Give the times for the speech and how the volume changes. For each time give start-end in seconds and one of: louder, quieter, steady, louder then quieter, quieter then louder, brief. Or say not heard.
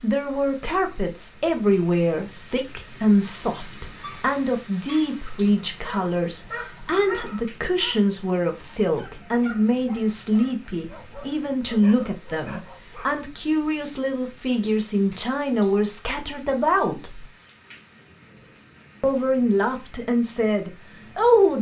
0.0-17.2 steady
19.0-21.5 brief.